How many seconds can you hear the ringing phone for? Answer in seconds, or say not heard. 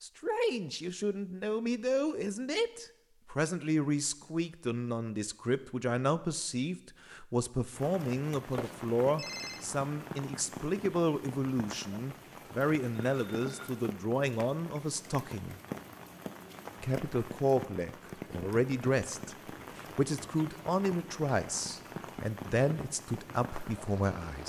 2 s.